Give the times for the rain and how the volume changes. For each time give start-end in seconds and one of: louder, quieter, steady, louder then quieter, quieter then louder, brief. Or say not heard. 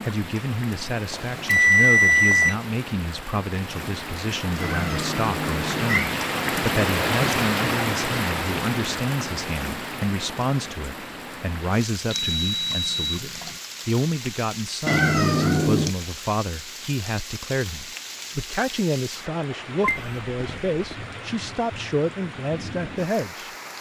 0.0-23.7 louder then quieter.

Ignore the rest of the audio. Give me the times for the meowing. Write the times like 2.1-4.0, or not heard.
4.6-6.2, 14.8-15.9.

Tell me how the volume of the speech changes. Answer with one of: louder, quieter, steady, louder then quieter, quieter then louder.
steady.